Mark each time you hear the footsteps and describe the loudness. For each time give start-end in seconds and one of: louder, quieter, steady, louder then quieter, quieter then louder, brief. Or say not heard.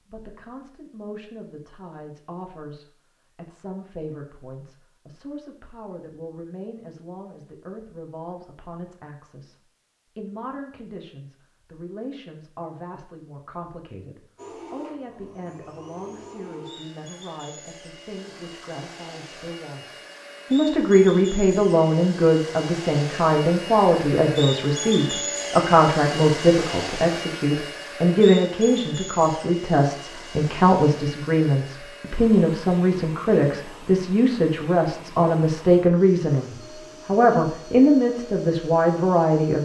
not heard.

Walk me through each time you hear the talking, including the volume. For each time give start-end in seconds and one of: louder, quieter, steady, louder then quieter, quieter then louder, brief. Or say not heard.
0.1-39.6 louder.